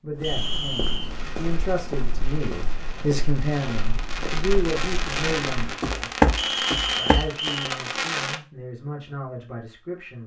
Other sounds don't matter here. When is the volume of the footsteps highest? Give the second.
6 s.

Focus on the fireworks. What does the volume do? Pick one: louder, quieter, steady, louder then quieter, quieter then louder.
louder.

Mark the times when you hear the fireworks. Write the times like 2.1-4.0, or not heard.
1.1-8.4.